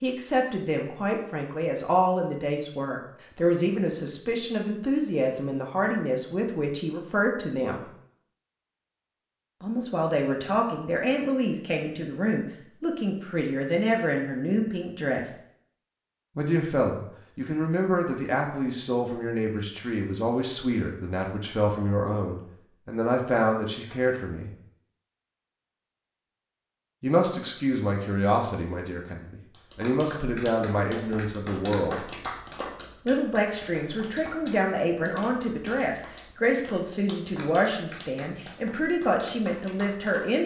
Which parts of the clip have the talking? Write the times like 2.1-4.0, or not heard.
0.0-7.8, 9.6-15.3, 16.4-24.5, 27.0-32.1, 33.0-40.4.